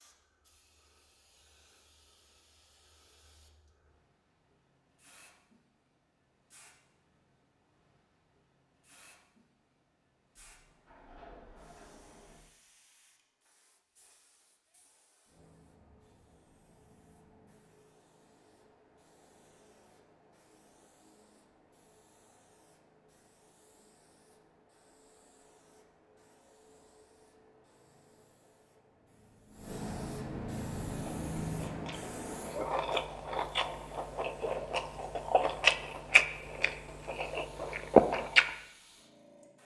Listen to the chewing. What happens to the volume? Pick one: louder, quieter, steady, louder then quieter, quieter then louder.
louder.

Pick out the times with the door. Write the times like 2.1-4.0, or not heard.
10.4-12.4.